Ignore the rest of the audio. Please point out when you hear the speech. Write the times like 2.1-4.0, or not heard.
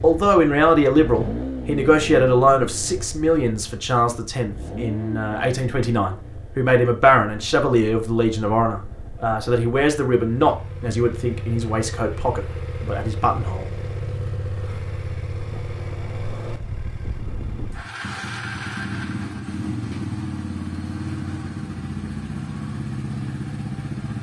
0.0-13.7.